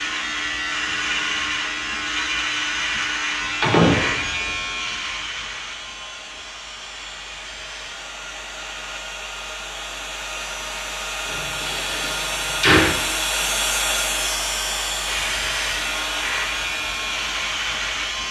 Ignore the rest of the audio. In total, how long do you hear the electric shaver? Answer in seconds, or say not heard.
12 s.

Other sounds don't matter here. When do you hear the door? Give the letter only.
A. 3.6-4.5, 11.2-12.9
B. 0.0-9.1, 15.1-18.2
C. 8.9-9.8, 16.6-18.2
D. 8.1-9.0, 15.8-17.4
A.